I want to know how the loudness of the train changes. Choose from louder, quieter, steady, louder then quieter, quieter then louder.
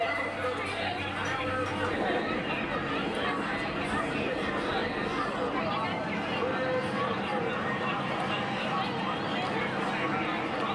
steady.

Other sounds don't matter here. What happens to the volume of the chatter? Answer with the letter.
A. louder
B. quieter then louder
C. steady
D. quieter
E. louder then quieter
C.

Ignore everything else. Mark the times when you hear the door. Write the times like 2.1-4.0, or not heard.
not heard.